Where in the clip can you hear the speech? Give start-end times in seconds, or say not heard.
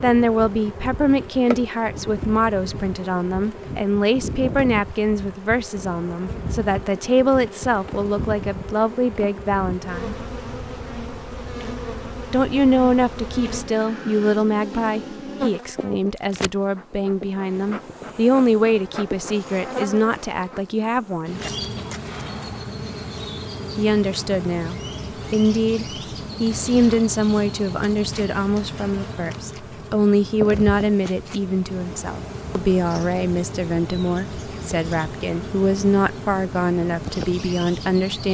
0.0-10.2, 12.3-21.4, 23.8-38.2.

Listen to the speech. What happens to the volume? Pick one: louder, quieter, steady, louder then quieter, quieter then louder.
steady.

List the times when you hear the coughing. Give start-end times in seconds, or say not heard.
21.8-22.6.